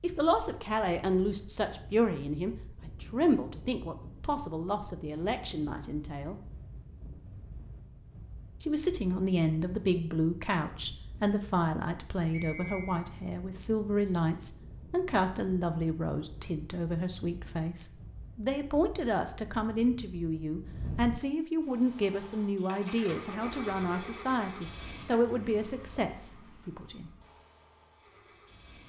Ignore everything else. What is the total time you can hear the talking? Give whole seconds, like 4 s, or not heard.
25 s.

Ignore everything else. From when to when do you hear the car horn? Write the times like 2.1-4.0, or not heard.
not heard.